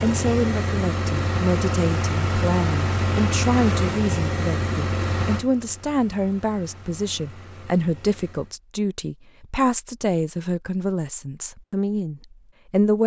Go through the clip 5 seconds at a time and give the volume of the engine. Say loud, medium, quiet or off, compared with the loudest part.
loud, medium, off.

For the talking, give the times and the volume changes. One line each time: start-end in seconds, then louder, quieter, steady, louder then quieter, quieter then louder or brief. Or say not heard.
0.0-13.0 steady.